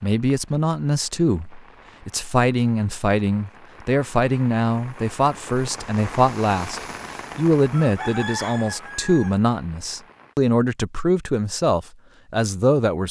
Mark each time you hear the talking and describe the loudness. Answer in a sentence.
You can hear the talking from 0.0 to 13.0 s, at a steady volume.